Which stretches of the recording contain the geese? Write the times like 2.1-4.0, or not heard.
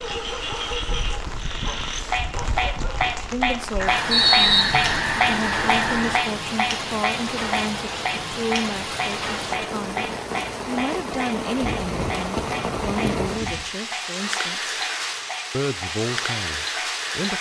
3.8-6.3, 11.6-13.7.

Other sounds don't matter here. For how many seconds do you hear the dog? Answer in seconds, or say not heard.
3 s.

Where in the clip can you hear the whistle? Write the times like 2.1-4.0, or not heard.
4.1-5.0.